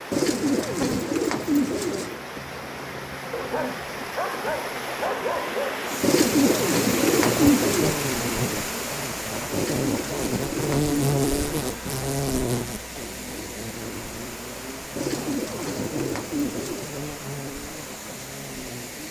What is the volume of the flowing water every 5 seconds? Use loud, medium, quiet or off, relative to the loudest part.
medium, loud, medium, medium.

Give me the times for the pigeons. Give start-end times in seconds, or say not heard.
0.1-2.1, 6.0-8.0, 9.5-11.8, 14.9-16.9.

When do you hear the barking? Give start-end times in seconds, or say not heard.
3.3-5.8.